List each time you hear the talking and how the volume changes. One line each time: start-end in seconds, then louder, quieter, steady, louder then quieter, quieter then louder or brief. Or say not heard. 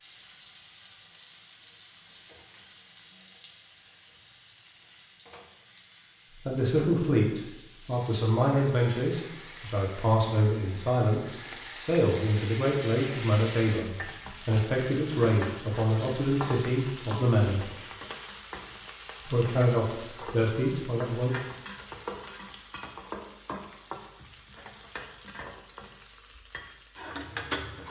6.5-17.7 steady
19.2-21.3 brief.